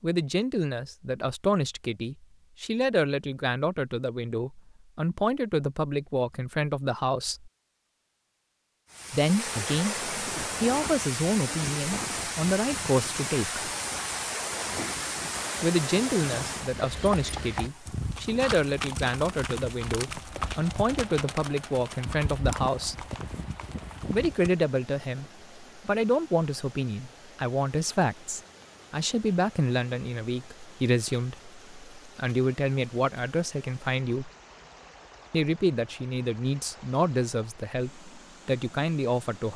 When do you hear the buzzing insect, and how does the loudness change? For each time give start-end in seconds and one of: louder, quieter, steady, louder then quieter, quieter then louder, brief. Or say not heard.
not heard.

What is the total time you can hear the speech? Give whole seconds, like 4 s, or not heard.
34 s.